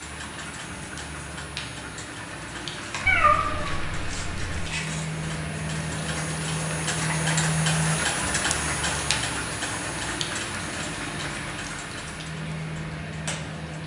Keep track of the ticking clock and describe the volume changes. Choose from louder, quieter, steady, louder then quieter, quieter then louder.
louder then quieter.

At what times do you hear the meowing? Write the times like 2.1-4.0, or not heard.
3.0-4.8.